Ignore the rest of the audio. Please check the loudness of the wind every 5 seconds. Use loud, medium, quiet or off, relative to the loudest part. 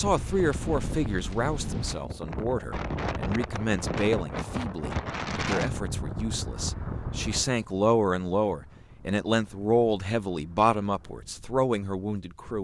loud, loud, quiet.